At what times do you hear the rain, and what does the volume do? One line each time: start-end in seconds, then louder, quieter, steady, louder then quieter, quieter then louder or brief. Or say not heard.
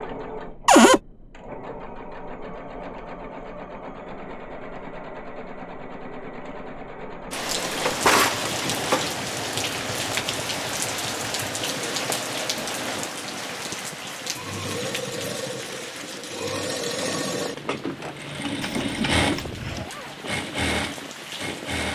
7.3-21.9 quieter.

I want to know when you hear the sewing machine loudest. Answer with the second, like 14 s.
19 s.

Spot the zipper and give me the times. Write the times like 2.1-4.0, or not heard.
19.8-20.2.